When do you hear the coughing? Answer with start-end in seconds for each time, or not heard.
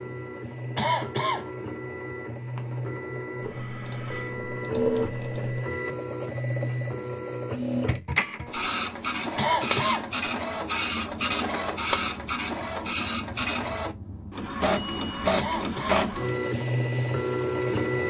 0.8-1.5, 9.3-10.1, 15.3-16.1.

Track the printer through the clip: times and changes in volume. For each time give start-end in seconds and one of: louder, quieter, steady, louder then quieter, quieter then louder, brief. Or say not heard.
0.0-18.0 louder.